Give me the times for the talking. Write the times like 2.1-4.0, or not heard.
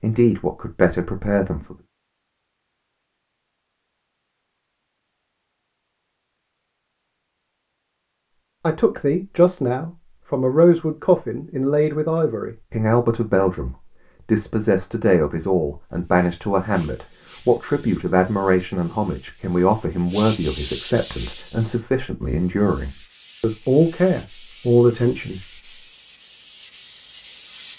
0.0-1.8, 8.6-25.4.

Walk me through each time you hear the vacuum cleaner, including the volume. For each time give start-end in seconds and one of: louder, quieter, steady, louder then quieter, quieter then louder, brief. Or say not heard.
not heard.